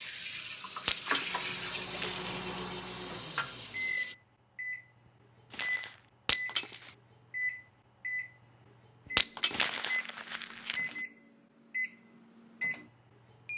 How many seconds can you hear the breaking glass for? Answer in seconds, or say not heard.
2 s.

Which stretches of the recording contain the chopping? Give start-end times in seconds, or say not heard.
not heard.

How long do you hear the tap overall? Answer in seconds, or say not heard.
4 s.